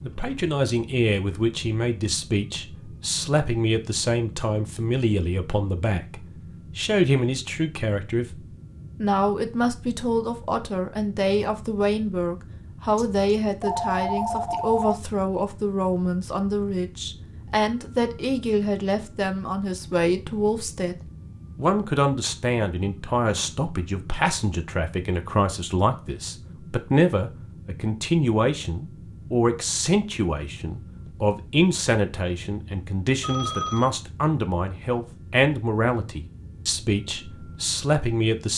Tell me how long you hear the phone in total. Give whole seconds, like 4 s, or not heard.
3 s.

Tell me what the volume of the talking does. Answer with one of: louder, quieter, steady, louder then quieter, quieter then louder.
steady.